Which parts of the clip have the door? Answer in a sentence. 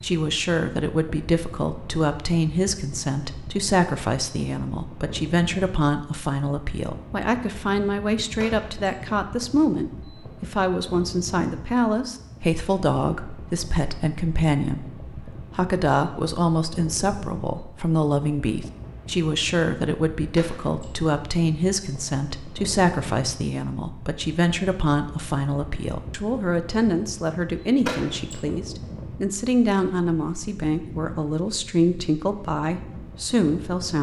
You can hear the door from 8.3 to 8.8 s, from 20.3 to 20.9 s and from 27.8 to 28.4 s.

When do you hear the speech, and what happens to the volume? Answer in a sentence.
The speech can be heard from 0.0 to 33.9 s, at a steady volume.